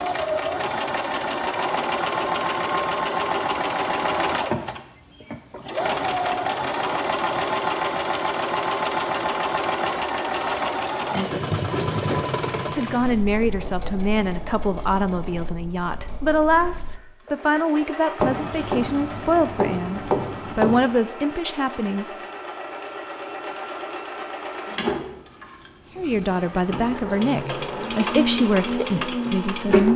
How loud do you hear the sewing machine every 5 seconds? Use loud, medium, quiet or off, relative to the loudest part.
loud, loud, loud, quiet, medium, loud.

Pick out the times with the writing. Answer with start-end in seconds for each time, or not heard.
18.2-20.9.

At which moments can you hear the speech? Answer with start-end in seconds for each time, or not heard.
12.8-22.1, 25.9-29.9.